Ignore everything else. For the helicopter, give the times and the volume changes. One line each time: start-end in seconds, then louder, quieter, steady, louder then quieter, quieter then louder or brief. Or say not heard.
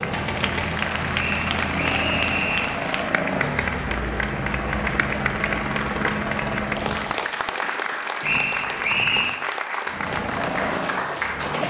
0.0-7.2 steady
9.8-11.6 brief.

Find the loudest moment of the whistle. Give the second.
9 s.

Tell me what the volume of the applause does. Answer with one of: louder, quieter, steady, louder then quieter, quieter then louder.
steady.